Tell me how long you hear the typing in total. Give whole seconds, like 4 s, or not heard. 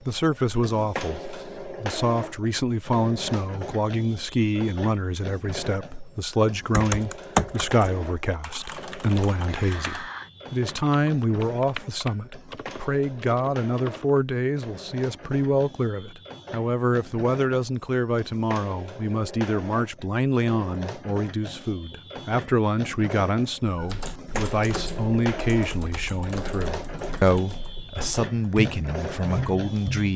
14 s.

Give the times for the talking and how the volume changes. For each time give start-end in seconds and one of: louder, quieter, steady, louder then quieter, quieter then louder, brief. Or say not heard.
0.0-30.1 steady.